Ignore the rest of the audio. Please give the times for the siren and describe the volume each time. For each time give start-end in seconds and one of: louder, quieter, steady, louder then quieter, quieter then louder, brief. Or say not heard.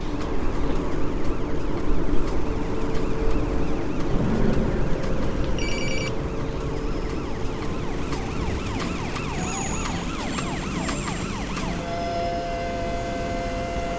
0.0-13.9 louder.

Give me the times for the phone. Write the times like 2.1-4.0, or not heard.
4.1-6.1.